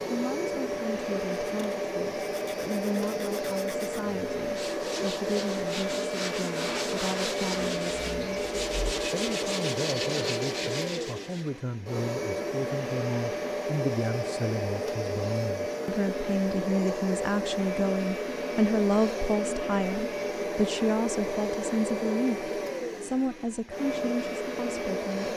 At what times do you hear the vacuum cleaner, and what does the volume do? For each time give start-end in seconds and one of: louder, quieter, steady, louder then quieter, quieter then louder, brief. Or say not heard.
0.0-25.3 steady.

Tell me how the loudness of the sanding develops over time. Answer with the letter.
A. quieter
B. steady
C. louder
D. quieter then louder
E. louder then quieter
C.